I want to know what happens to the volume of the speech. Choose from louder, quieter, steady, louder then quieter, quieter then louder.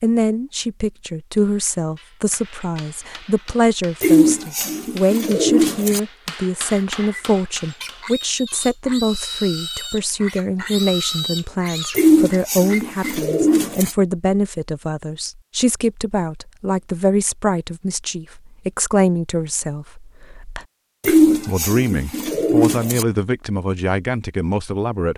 steady.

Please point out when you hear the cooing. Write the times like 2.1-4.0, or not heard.
4.0-6.0, 11.9-13.9, 21.0-23.1.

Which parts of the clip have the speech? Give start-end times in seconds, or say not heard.
0.0-25.1.